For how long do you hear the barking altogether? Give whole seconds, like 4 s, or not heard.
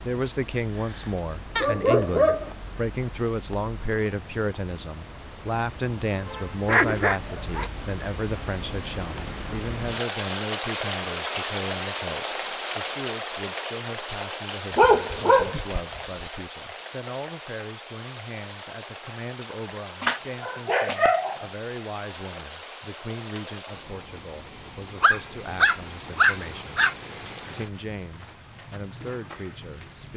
7 s.